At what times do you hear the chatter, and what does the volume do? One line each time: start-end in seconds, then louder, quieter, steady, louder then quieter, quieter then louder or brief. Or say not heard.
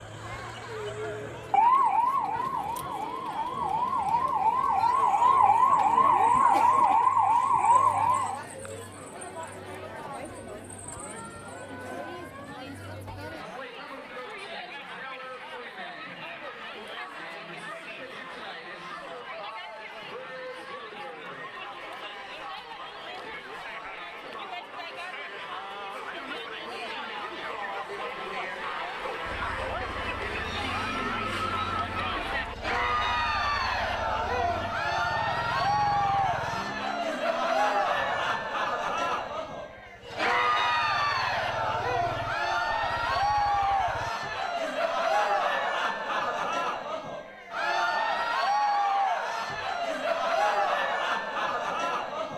0.0-52.3 louder.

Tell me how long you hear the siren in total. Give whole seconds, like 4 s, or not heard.
8 s.